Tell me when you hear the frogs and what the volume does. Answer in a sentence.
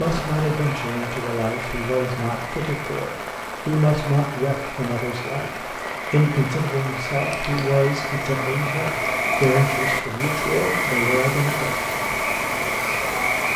You can hear the frogs from 0.0 to 13.5 s, getting louder.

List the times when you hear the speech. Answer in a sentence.
You can hear the speech from 0.0 to 11.8 s.